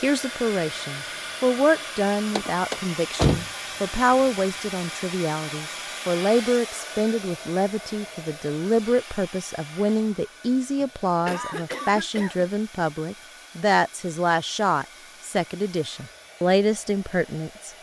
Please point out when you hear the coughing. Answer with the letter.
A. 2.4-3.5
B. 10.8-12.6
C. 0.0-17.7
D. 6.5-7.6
B.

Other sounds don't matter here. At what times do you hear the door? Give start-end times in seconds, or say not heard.
2.4-3.5.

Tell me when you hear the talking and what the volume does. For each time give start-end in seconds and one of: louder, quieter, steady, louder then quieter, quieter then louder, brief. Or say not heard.
0.0-17.7 steady.